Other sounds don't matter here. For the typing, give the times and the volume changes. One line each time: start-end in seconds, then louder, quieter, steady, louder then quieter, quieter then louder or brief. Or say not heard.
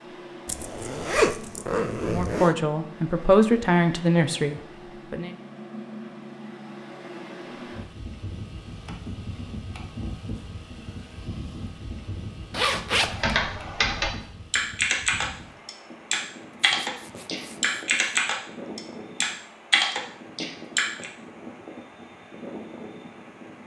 13.1-21.1 steady.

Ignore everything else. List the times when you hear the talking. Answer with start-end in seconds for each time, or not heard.
2.0-5.3.